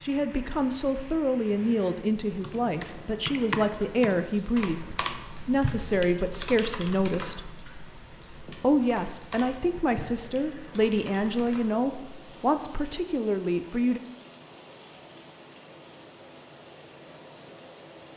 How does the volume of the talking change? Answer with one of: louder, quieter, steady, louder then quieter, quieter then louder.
steady.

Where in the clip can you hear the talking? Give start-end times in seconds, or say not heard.
0.0-7.5, 8.6-14.0.